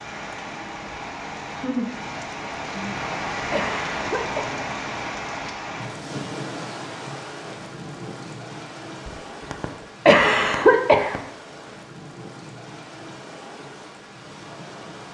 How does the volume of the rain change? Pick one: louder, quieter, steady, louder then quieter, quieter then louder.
quieter.